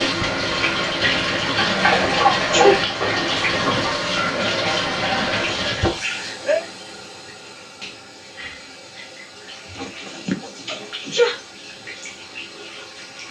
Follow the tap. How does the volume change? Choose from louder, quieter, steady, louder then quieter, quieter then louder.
quieter.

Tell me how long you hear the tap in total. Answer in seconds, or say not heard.
13 s.